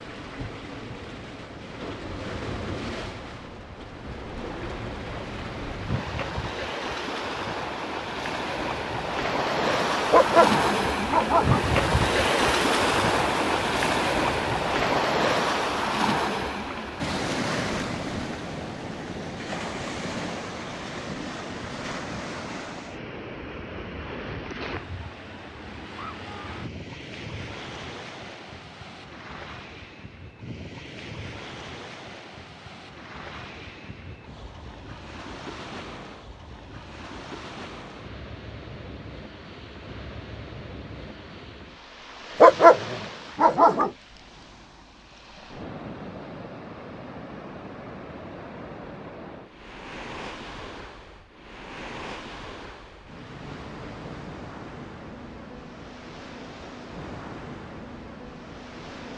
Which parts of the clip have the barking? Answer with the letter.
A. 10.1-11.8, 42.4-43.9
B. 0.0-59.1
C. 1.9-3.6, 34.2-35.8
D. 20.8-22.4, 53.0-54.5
A.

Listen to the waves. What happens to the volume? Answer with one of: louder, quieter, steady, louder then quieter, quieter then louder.
quieter.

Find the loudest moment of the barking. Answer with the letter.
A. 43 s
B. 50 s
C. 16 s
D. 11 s
A.